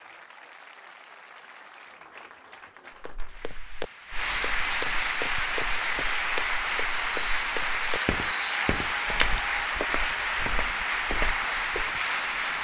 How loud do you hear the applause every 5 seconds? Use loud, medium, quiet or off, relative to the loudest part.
medium, loud, loud.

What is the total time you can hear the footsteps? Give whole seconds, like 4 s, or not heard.
9 s.